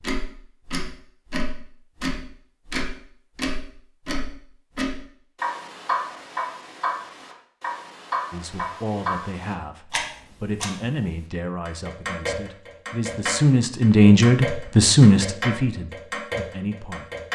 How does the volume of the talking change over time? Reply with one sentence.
The loudness of the talking goes up, then down.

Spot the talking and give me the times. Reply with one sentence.
The talking can be heard from 8.3 to 17.1 s.